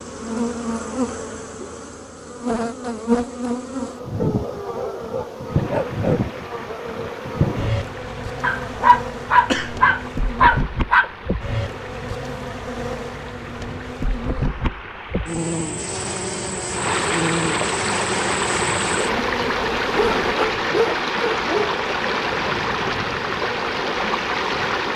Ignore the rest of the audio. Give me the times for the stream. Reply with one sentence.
The stream can be heard from 5.5 to 24.9 s.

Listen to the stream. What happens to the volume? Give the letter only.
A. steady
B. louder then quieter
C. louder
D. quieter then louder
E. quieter
C.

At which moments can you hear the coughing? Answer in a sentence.
The coughing can be heard from 9.3 to 9.8 s.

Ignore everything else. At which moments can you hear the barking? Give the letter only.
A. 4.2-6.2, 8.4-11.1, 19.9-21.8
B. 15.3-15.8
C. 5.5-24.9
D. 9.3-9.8
A.